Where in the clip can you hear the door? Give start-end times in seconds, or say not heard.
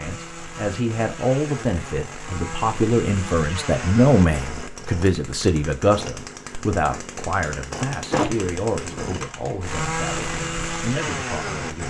7.8-9.0.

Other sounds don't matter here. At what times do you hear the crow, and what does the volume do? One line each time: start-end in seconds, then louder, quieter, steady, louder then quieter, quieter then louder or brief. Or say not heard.
not heard.